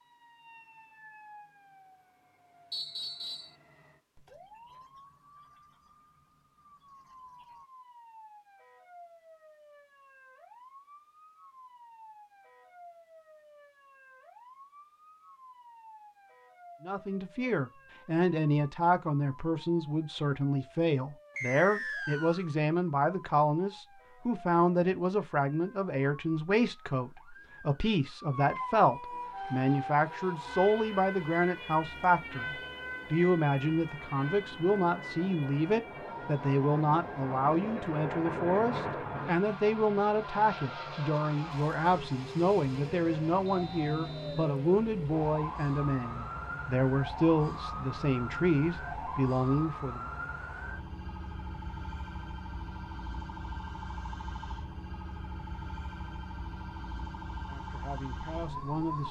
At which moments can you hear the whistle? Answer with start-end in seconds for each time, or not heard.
2.7-3.5, 21.4-22.4, 43.5-44.5.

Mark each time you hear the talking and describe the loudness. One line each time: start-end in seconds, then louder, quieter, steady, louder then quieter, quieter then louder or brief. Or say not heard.
16.8-32.5 steady
33.1-50.0 steady
57.5-59.0 brief.